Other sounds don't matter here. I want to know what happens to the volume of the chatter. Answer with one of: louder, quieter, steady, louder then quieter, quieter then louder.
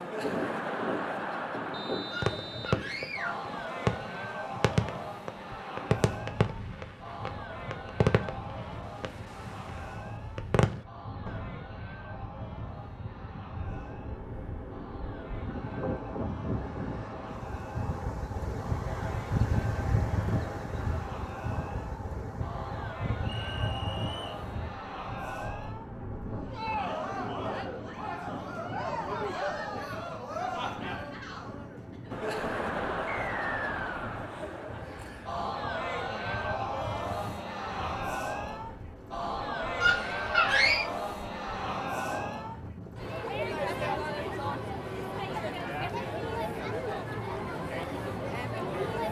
quieter then louder.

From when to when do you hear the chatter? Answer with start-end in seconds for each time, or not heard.
0.0-49.0.